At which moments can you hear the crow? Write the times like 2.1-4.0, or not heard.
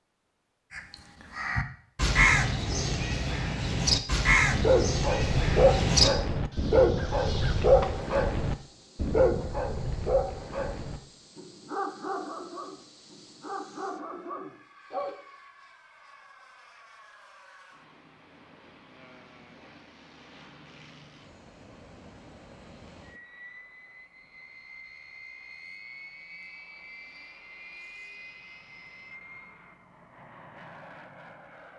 0.7-8.0.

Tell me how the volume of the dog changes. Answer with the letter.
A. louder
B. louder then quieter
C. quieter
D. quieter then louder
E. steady
C.